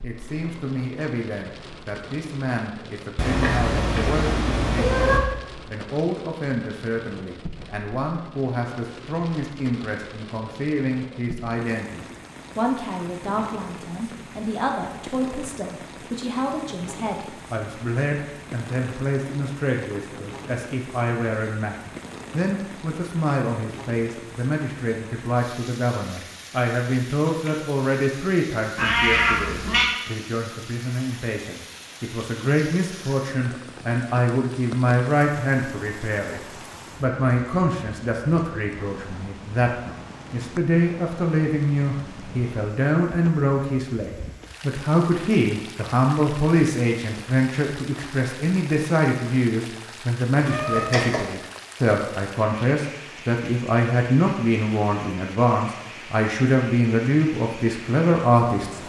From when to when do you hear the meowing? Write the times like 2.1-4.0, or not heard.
3.1-5.2, 28.8-29.9, 50.4-51.2.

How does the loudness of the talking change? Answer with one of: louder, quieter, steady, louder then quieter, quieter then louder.
louder.